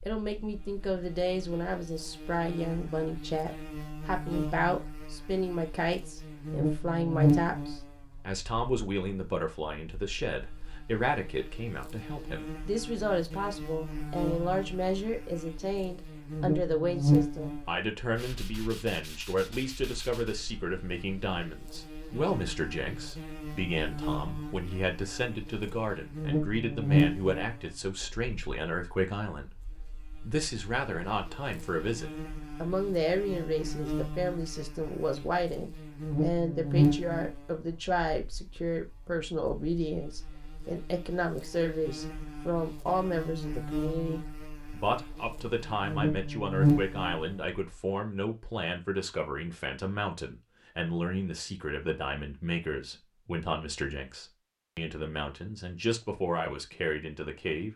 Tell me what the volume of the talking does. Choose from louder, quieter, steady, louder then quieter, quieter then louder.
steady.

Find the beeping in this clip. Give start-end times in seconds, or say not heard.
not heard.